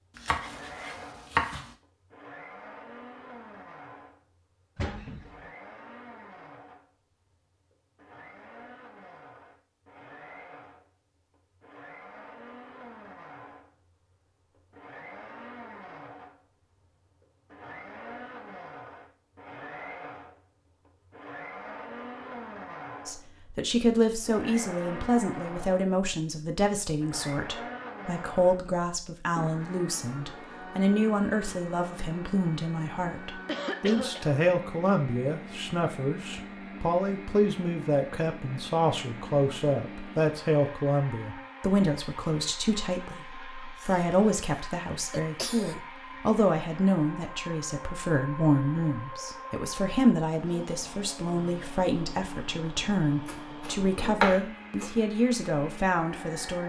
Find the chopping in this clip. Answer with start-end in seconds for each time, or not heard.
0.1-1.7, 53.2-55.0.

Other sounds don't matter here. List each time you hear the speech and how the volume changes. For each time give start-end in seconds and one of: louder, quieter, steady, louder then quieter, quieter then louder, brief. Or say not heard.
23.1-56.6 steady.